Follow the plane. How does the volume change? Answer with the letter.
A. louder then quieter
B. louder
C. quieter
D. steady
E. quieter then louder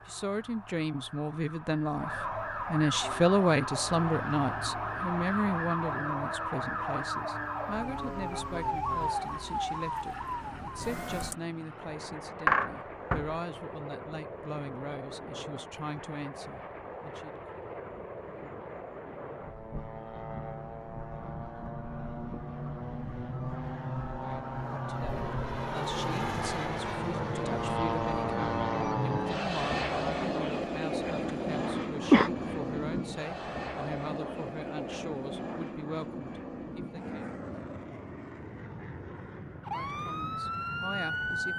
A.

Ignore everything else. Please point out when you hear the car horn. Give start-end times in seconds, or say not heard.
not heard.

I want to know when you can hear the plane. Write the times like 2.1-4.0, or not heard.
3.0-41.5.